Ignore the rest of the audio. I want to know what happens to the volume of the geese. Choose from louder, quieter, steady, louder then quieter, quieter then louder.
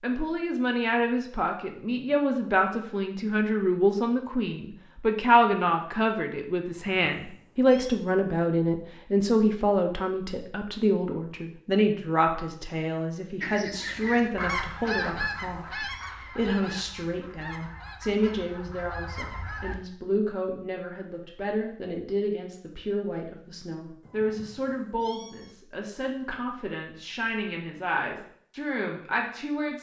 quieter.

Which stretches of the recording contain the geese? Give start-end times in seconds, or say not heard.
13.4-19.8.